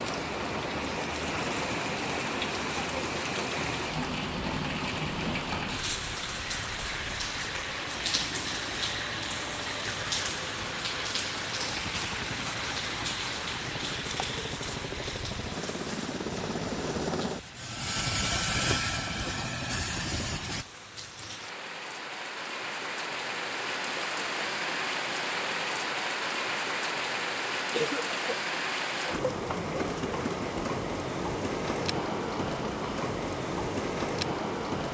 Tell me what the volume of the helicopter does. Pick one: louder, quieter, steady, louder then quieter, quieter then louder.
louder.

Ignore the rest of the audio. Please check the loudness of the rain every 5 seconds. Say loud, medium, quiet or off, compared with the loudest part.
loud, loud, loud, medium, loud, loud, loud.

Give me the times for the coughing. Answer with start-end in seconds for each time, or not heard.
27.7-28.4.